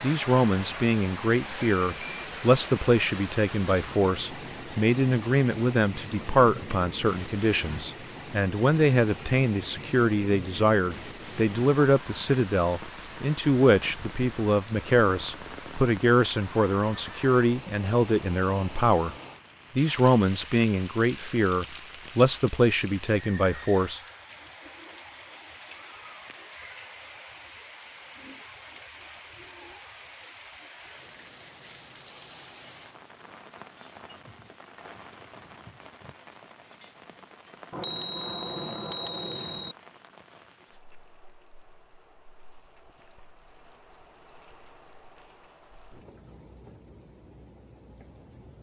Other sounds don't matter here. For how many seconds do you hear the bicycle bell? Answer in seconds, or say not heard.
3 s.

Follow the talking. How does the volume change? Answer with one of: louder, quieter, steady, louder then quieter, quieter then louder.
steady.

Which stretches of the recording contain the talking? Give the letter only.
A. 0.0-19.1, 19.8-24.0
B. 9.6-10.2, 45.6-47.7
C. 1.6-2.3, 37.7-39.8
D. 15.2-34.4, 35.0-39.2
A.